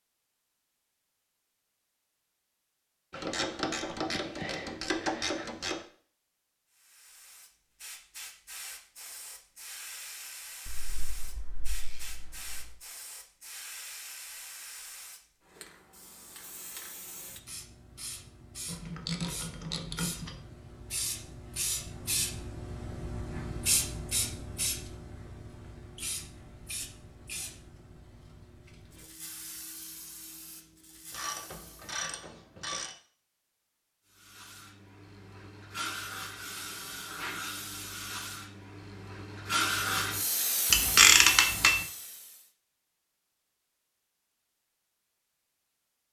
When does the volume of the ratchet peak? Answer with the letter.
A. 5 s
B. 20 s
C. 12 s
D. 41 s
D.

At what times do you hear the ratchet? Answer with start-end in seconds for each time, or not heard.
3.1-5.8, 10.7-12.7, 18.7-20.3, 31.1-32.9, 40.7-41.7.